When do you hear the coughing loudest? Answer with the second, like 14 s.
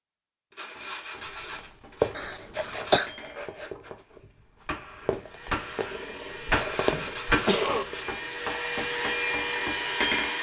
3 s.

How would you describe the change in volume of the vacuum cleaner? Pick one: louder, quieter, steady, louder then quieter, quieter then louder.
louder.